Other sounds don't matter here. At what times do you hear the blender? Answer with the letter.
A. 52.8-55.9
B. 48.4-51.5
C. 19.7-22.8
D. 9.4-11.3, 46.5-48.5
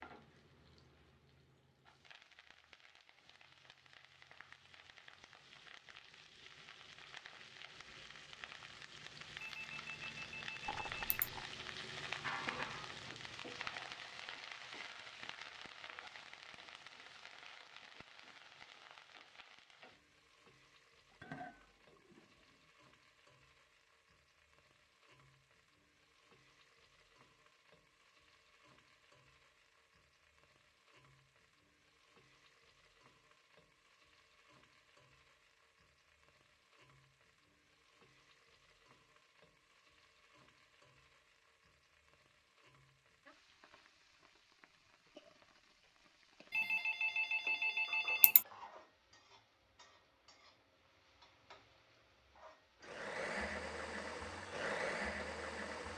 A.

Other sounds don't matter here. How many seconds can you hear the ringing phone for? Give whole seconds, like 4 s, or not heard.
4 s.